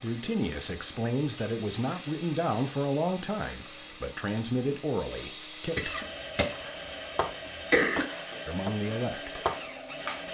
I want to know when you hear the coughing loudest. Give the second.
8 s.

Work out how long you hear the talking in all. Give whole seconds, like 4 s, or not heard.
7 s.